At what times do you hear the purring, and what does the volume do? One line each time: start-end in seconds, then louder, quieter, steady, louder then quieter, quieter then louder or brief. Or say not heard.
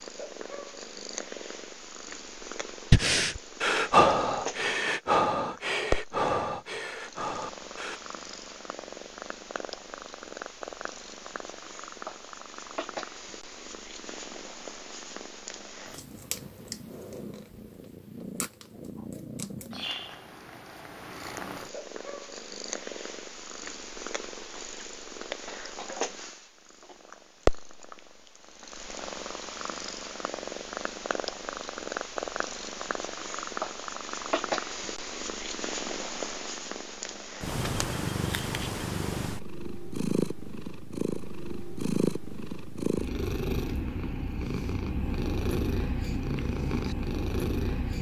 0.0-47.9 louder.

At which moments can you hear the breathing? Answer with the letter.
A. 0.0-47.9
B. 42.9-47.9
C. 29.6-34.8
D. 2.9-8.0
D.